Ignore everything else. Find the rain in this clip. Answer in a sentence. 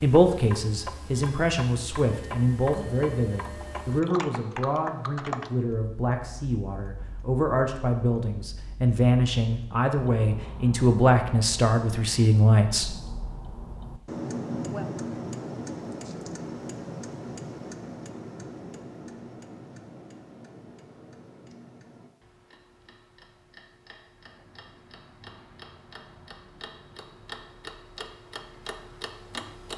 The rain can't be heard in this clip.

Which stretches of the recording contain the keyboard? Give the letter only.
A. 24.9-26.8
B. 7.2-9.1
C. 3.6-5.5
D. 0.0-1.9
C.